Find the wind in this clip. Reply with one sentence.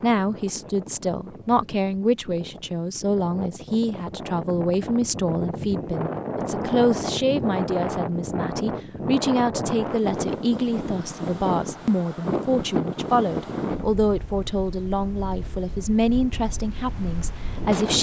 You can hear the wind from 0.0 to 17.9 s.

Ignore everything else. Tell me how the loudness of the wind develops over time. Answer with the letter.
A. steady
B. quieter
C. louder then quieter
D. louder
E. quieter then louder
C.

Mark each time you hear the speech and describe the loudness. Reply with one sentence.
The speech can be heard from 0.0 to 17.9 s, at a steady volume.